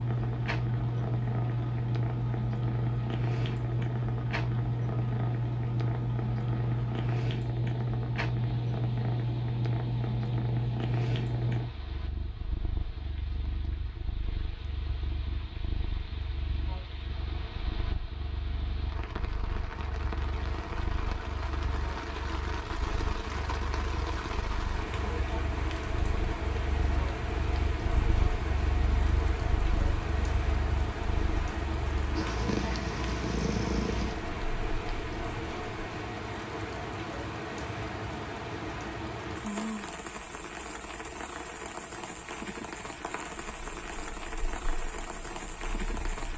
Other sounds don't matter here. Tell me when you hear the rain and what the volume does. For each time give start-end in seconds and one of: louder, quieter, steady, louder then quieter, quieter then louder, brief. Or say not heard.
0.0-46.3 louder.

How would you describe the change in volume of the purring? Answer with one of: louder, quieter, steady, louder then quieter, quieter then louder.
quieter then louder.